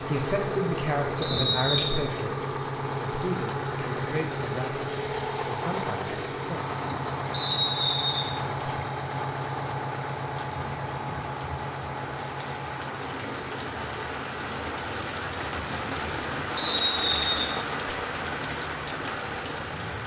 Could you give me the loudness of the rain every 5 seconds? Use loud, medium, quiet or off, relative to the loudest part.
medium, medium, medium, loud.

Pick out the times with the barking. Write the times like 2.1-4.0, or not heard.
not heard.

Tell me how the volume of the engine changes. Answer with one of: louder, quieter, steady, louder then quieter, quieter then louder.
quieter.